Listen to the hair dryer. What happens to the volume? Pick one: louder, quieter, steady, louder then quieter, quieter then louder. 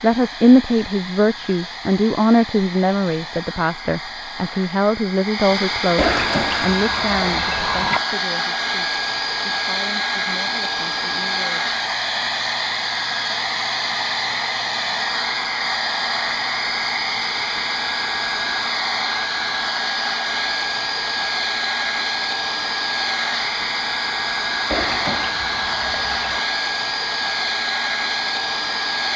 louder.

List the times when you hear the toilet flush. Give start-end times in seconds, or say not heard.
6.0-8.0, 24.7-26.4.